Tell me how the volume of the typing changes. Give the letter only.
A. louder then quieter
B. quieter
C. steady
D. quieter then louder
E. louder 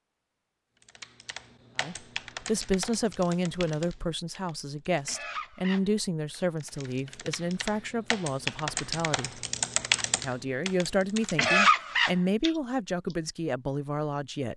E.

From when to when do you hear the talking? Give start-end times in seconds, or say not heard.
1.8-9.4, 10.2-14.5.